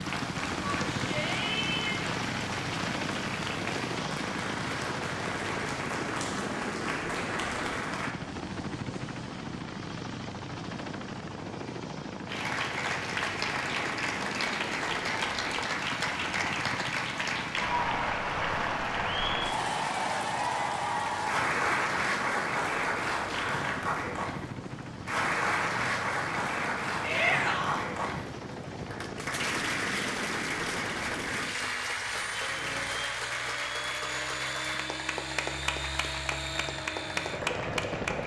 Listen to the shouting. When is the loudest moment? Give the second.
27 s.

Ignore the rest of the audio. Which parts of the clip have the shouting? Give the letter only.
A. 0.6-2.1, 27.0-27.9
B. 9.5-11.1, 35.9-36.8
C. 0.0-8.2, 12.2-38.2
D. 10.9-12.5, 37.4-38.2
A.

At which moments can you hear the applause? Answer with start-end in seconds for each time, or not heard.
0.0-8.2, 12.2-38.2.